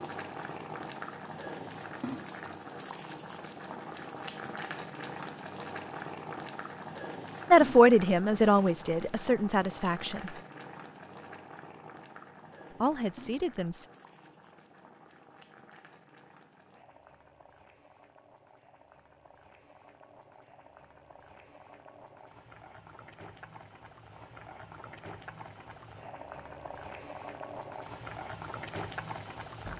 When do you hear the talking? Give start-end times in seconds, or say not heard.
7.5-10.3, 12.8-13.8.